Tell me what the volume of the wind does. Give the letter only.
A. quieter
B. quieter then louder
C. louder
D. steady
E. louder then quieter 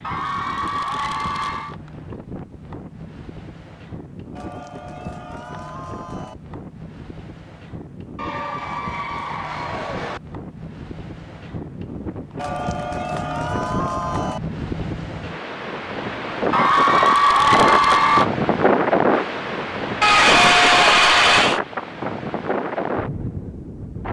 C.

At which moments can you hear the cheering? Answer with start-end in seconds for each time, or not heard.
0.0-1.8, 4.3-6.3, 8.2-10.2, 12.3-14.4, 16.5-18.2, 20.0-21.6.